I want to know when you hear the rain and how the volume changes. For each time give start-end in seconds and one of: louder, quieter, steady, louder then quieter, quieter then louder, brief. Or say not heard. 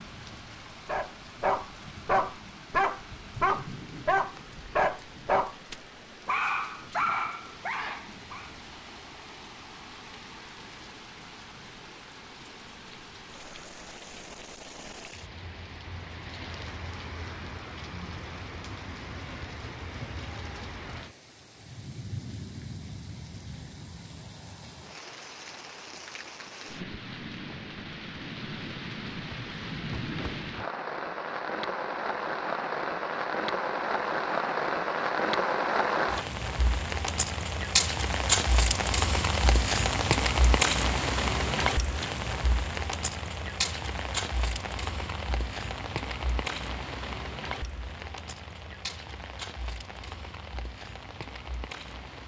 0.0-52.2 louder then quieter.